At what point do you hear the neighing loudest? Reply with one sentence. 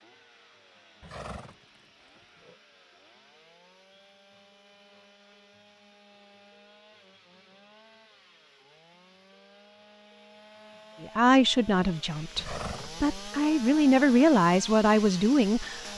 The volume of the neighing peaks at 13 seconds.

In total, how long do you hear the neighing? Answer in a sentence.
You can hear the neighing for 2 seconds altogether.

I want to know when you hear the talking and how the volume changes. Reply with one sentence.
You can hear the talking from 11.0 to 15.9 s, getting quieter then louder.